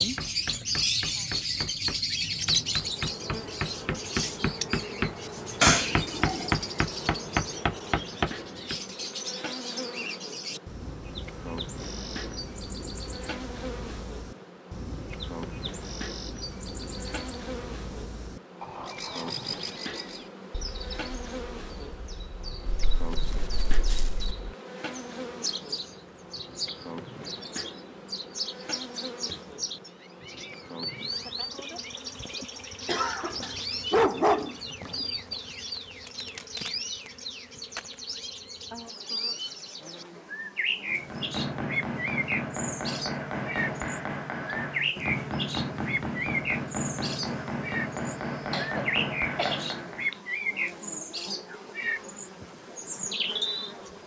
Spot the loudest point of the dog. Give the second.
34 s.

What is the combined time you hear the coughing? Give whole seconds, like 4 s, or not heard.
3 s.